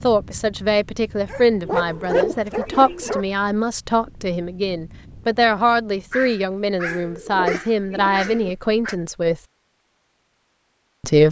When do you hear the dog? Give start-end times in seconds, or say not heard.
1.2-3.2, 6.1-8.9.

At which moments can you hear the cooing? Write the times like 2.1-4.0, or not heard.
1.6-3.1, 7.0-8.6.